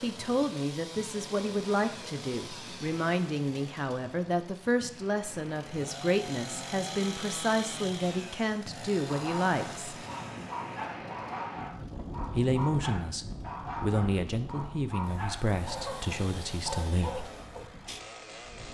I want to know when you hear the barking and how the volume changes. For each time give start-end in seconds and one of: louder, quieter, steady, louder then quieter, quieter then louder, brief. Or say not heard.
9.1-17.9 steady.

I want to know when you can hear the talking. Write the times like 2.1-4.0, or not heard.
0.0-9.9, 12.3-17.3.